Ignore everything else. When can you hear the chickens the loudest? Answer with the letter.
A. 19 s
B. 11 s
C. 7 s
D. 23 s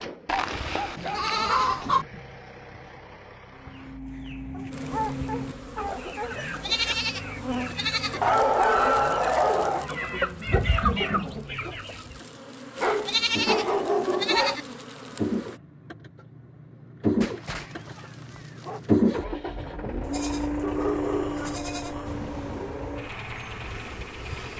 B.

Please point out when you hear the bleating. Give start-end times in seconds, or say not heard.
0.2-2.0, 6.5-8.2, 12.8-14.7, 20.0-22.1.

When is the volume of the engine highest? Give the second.
19 s.